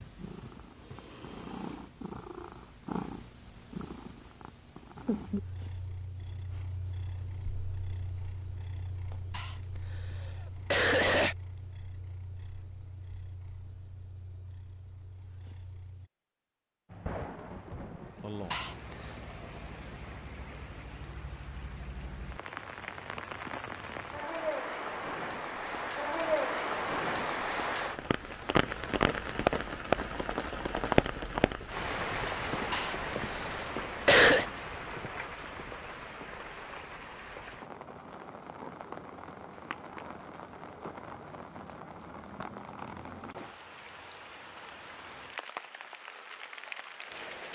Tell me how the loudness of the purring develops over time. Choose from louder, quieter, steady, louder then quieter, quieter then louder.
quieter.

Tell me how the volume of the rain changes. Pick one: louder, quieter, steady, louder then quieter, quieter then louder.
louder then quieter.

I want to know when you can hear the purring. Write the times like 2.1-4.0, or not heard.
0.0-16.1.